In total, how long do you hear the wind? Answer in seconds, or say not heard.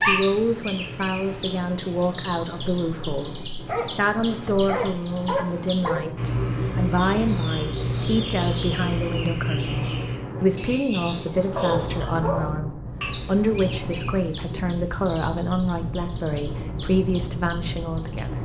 18 s.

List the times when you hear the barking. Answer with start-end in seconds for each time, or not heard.
3.6-6.1, 11.6-12.6.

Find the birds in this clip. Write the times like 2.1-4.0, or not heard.
0.0-18.3.